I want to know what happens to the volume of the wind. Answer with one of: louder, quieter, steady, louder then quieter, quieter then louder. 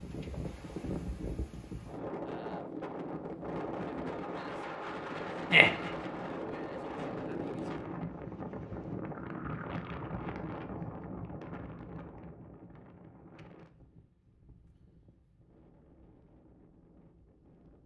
quieter.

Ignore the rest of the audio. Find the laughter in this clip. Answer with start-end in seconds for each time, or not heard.
5.5-5.9.